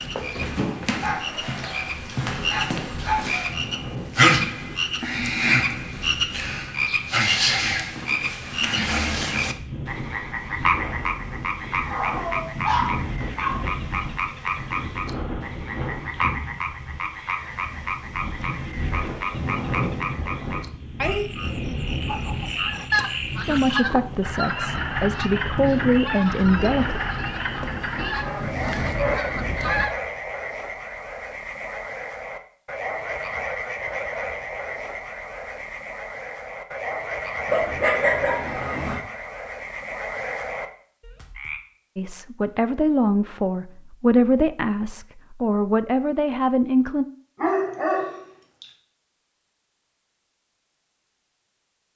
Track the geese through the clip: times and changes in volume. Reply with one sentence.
You can hear the geese from 22.1 to 29.9 s, getting quieter.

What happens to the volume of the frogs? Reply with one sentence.
The loudness of the frogs goes down.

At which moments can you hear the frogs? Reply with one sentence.
The frogs can be heard from 0.0 to 41.6 s.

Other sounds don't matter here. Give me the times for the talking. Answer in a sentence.
You can hear the talking from 23.4 to 27.0 s and from 42.0 to 47.0 s.